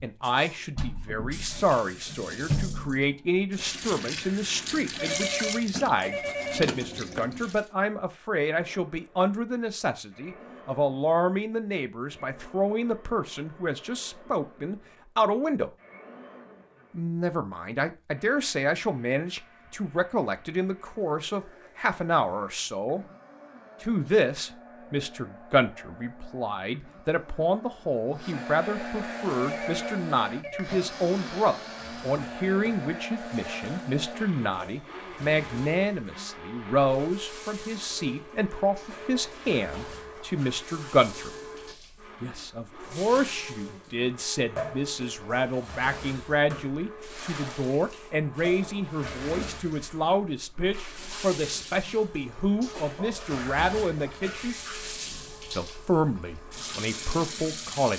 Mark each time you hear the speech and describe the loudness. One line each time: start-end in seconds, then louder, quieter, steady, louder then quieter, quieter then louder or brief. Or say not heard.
0.0-15.7 steady
16.9-23.1 steady
23.8-41.3 steady
42.2-54.5 steady
55.5-57.9 brief.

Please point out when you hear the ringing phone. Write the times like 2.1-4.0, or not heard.
5.0-6.7, 29.4-30.7.